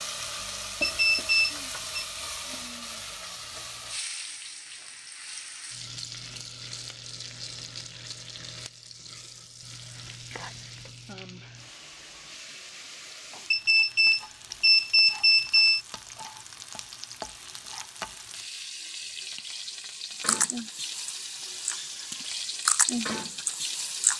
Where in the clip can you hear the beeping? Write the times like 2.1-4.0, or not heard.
0.8-2.0, 13.5-15.8.